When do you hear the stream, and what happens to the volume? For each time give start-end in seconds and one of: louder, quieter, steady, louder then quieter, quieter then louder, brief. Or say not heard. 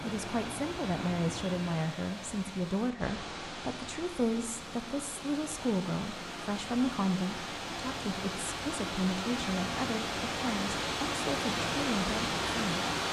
0.0-13.0 louder.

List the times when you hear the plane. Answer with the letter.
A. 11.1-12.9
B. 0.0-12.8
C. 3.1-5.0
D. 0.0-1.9
D.